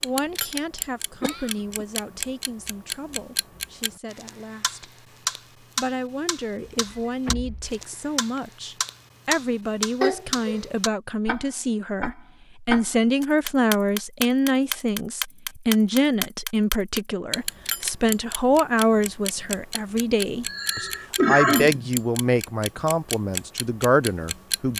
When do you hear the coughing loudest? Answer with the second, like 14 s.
21 s.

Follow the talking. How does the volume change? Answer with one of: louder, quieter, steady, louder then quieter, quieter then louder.
louder.